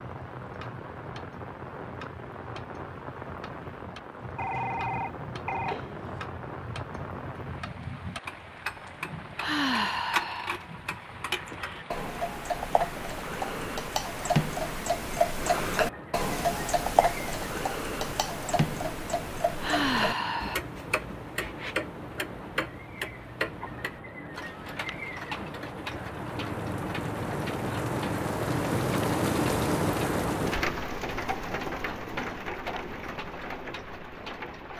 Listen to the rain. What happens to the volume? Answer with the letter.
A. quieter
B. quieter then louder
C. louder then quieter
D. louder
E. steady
D.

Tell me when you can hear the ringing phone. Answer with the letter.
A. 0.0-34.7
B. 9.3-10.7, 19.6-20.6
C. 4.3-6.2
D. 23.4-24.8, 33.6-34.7
C.